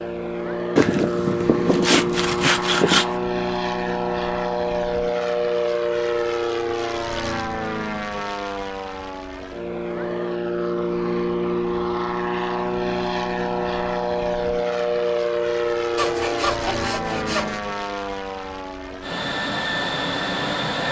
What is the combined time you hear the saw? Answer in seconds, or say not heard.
4 s.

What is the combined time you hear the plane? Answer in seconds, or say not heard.
21 s.